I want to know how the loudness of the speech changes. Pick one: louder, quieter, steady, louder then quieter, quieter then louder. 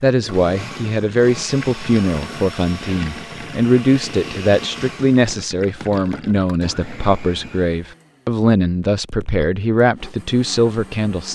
steady.